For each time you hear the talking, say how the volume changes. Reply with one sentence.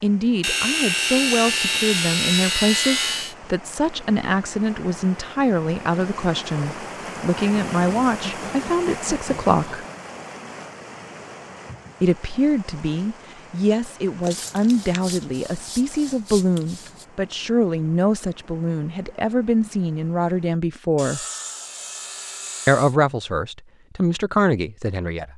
You can hear the talking from 0.0 to 9.8 s, at a steady volume; from 12.0 to 21.2 s, at a steady volume; and briefly from 22.6 to 25.3 s.